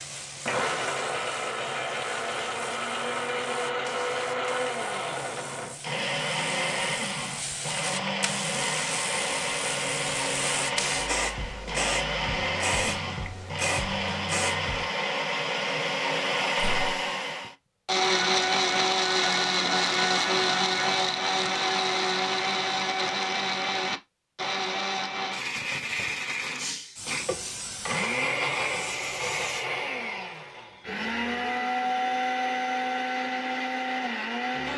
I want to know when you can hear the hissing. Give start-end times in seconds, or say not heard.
0.0-14.9, 26.6-29.7.